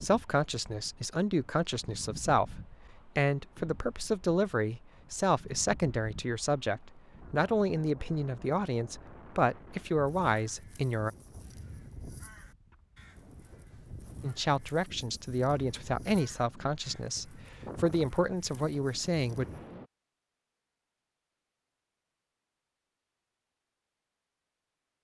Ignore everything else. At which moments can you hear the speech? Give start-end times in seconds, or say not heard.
0.0-11.1, 14.2-19.4.